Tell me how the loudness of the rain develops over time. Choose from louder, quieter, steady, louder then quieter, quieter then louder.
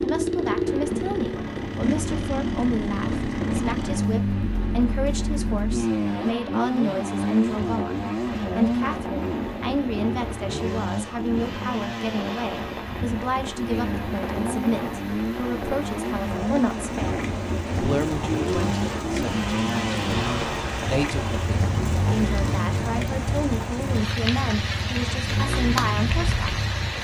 louder.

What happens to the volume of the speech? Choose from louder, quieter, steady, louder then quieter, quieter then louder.
steady.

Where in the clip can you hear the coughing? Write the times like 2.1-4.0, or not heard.
not heard.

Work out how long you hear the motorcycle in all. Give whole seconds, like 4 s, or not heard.
27 s.